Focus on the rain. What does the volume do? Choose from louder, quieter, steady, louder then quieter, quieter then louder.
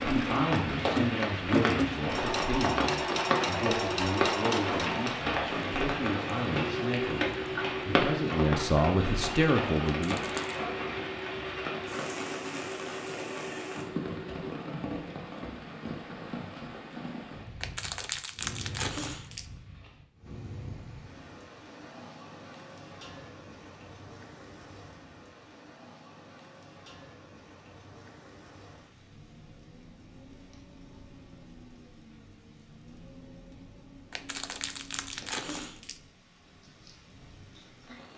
quieter.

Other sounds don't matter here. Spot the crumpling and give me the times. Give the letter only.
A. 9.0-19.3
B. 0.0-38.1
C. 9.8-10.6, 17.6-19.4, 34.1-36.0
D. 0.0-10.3
C.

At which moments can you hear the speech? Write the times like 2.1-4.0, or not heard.
0.0-10.3.